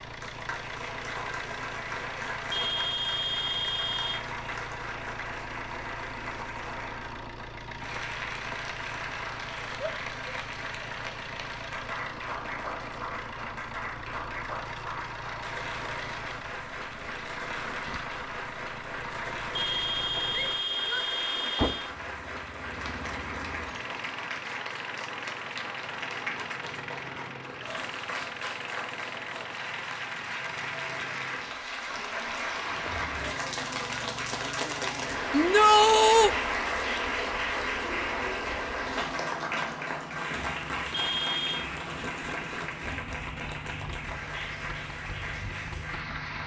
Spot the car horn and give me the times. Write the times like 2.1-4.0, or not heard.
2.5-4.2, 19.5-21.9, 40.9-41.6.